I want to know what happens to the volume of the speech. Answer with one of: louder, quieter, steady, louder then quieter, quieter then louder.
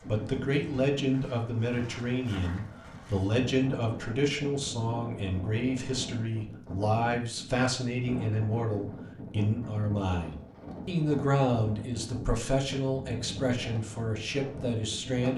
steady.